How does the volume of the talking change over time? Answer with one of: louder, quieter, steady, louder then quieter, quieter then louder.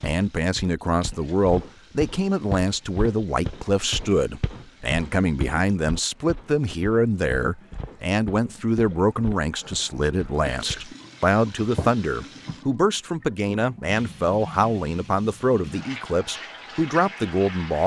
steady.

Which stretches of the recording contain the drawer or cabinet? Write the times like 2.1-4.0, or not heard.
not heard.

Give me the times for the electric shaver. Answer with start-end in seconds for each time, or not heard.
not heard.